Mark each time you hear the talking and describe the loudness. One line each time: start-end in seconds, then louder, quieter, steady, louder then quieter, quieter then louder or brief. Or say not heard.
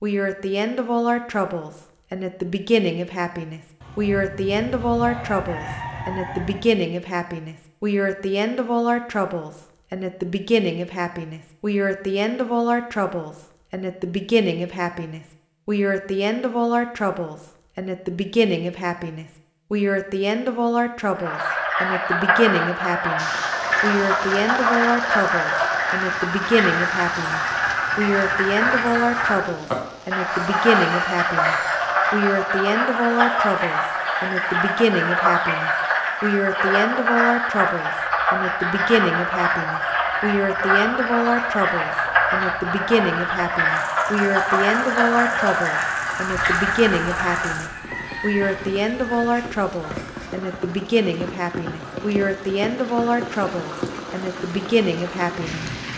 0.0-55.6 steady.